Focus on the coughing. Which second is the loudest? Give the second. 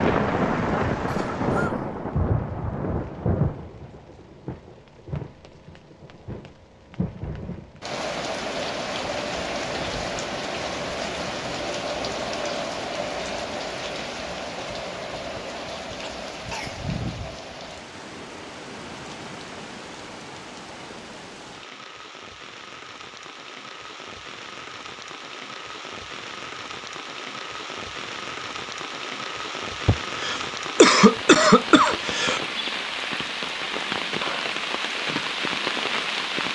31 s.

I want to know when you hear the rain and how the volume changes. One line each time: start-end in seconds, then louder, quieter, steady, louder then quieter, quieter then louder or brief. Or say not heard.
0.0-36.5 quieter then louder.